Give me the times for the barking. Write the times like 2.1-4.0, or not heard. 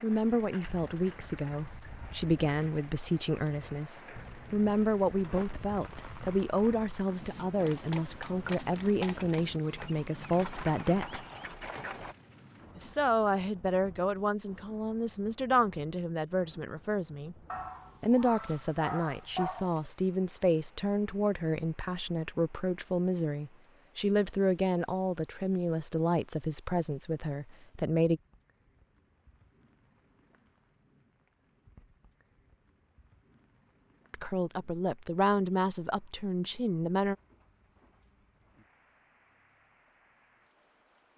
17.4-19.7.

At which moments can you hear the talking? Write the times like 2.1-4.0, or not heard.
0.0-11.2, 12.8-17.4, 18.0-28.2, 34.1-37.1.